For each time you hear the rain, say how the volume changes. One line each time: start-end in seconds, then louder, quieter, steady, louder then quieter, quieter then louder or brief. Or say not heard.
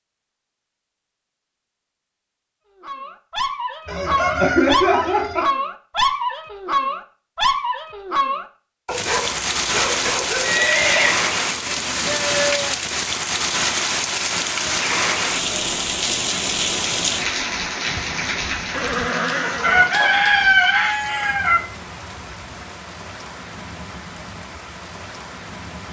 8.8-25.8 quieter.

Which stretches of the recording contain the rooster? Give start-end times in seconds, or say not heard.
3.9-5.5, 19.6-21.6.